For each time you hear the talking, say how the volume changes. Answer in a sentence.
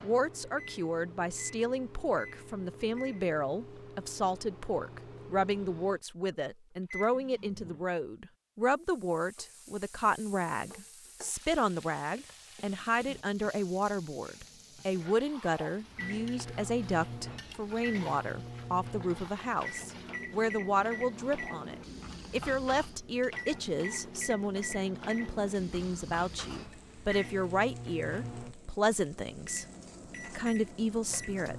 You can hear the talking from 0.0 to 29.6 s, at a steady volume; and briefly from 30.2 to 31.5 s.